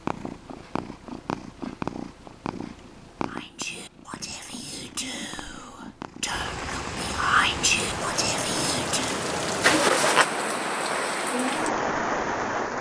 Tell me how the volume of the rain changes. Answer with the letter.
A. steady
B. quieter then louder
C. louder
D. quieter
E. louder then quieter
C.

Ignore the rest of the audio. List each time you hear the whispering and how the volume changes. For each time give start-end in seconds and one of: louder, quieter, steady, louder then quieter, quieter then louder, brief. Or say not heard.
3.2-9.2 louder then quieter.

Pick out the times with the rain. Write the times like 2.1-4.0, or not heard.
6.2-12.7.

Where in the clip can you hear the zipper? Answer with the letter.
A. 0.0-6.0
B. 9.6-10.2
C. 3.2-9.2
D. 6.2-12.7
B.